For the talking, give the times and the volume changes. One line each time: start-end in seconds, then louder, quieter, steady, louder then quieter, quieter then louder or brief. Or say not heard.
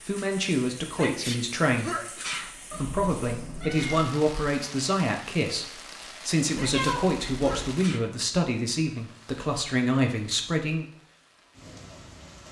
0.1-10.8 steady.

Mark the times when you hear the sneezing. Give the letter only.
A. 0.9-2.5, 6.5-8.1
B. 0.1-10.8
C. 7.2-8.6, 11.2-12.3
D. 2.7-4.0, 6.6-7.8
A.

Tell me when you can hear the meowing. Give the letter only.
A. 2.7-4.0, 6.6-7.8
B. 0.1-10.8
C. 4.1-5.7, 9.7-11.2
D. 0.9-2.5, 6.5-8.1
A.